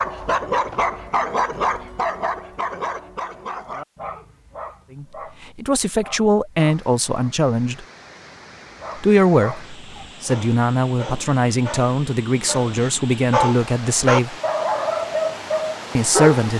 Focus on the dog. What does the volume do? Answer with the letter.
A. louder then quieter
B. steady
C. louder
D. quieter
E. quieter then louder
E.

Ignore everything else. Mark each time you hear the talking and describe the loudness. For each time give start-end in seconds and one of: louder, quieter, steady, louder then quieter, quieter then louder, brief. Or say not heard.
5.0-7.8 brief
8.9-14.3 steady
15.9-16.5 brief.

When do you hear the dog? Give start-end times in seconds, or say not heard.
0.0-7.3, 8.7-16.5.